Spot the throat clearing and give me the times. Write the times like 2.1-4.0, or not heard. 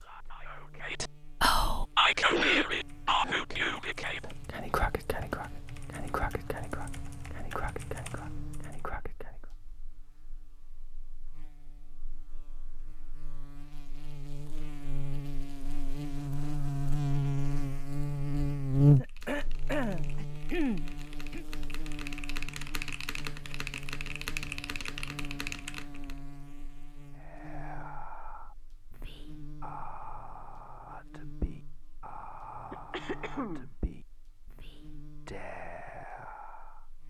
2.1-3.1, 18.9-21.4, 32.7-33.7.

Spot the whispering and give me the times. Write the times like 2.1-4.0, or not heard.
0.0-9.5, 27.1-36.9.